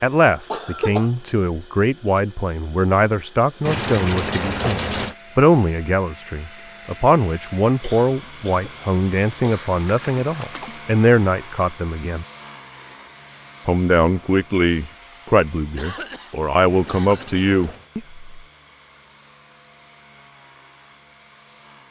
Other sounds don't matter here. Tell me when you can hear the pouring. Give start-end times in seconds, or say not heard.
3.6-5.2, 9.9-10.8, 16.6-17.9.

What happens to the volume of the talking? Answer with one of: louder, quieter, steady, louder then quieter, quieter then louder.
steady.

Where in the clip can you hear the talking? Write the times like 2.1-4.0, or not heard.
0.0-12.2, 13.7-18.2.